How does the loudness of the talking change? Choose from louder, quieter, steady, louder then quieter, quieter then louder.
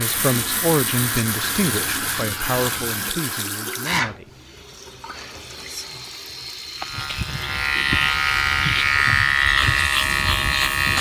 quieter.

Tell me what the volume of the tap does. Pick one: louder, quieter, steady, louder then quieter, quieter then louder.
quieter.